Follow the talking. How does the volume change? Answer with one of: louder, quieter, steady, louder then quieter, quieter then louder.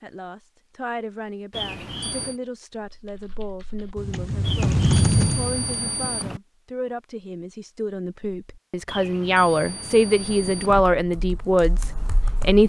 louder.